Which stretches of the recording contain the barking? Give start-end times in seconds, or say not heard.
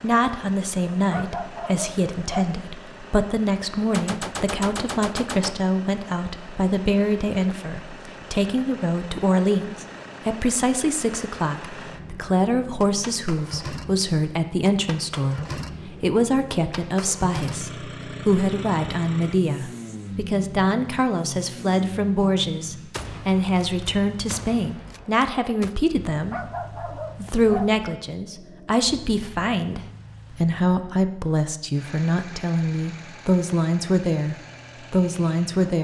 0.9-2.5, 26.1-28.8.